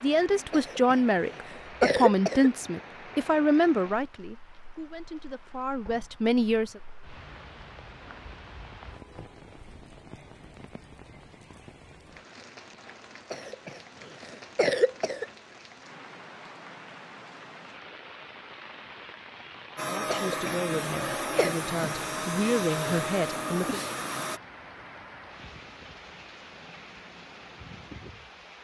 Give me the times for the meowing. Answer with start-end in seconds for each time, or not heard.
not heard.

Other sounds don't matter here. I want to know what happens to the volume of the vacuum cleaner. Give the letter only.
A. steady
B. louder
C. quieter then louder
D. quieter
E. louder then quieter
A.